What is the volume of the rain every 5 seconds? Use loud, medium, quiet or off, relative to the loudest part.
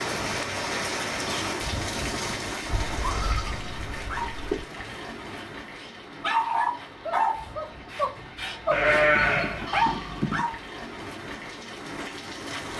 loud, medium, medium.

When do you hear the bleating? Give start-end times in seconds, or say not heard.
2.9-4.7, 8.7-10.4.